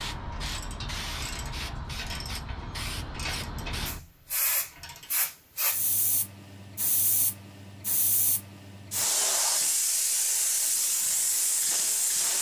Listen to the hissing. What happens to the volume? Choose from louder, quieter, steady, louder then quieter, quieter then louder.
louder.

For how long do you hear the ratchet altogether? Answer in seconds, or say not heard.
5 s.